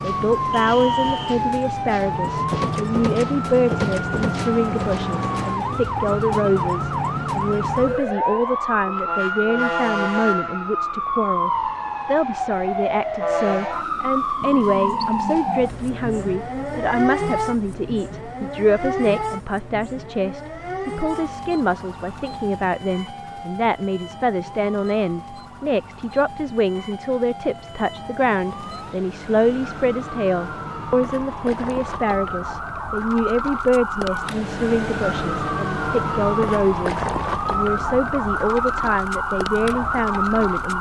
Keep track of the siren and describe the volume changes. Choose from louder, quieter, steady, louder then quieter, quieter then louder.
quieter then louder.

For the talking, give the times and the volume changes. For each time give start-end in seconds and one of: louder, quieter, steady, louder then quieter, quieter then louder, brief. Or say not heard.
0.0-40.7 steady.